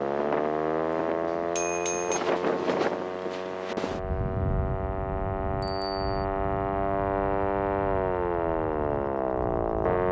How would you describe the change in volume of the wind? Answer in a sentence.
The loudness of the wind goes up, then down.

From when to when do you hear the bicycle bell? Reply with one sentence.
You can hear the bicycle bell from 1.2 to 2.2 s and from 5.6 to 6.2 s.